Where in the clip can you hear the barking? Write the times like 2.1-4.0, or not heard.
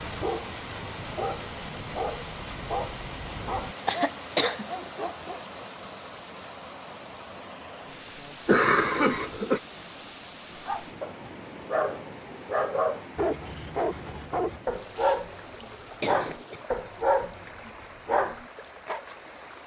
0.0-5.4, 10.7-19.0.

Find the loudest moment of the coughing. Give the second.
9 s.